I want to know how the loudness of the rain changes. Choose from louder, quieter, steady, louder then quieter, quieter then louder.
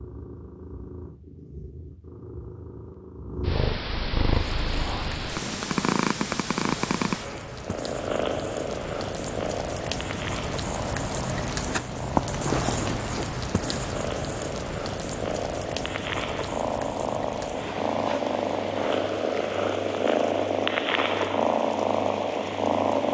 louder then quieter.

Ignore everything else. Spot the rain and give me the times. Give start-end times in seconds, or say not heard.
4.3-23.0.